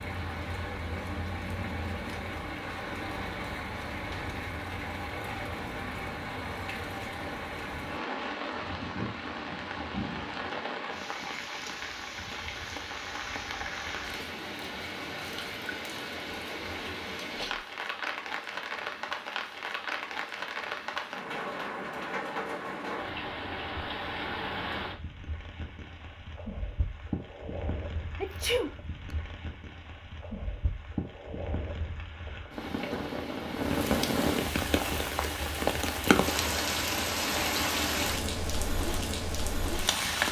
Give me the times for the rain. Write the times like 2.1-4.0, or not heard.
0.0-40.2.